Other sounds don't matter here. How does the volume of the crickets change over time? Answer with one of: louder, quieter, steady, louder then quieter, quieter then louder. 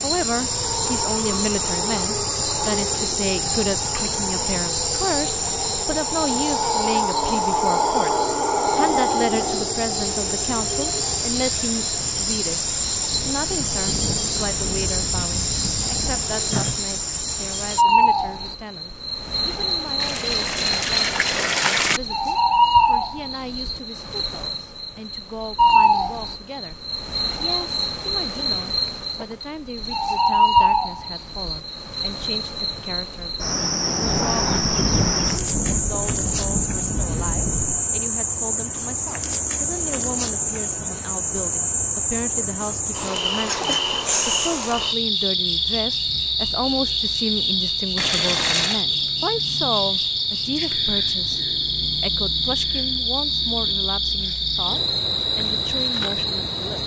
steady.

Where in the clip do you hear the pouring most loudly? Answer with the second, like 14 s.
22 s.